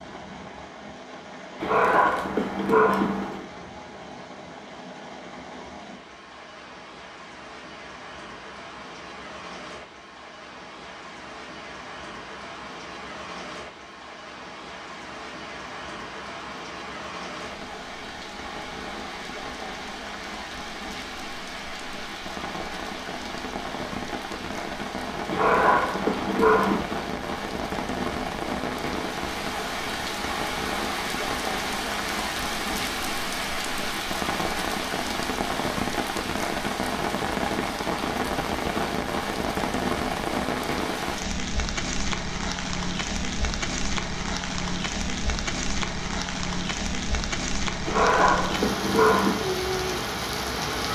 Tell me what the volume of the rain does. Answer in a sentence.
The volume of the rain goes up.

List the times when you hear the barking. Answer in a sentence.
You can hear the barking from 1.6 to 3.5 s, from 25.3 to 26.9 s and from 47.9 to 49.4 s.